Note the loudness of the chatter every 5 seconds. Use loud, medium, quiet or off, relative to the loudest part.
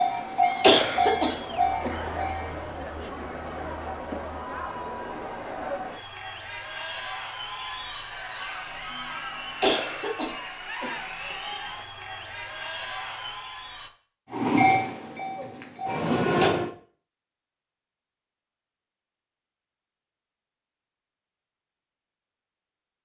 loud, loud, loud, off, off.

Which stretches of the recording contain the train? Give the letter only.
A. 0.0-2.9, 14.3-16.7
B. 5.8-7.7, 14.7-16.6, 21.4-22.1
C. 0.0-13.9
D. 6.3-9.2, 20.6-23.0
A.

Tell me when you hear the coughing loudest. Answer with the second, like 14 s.
1 s.